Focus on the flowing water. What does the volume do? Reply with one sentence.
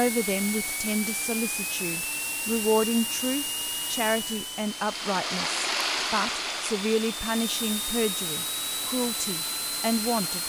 The volume of the flowing water goes down.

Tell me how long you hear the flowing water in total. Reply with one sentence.
The flowing water can be heard for 6 seconds in total.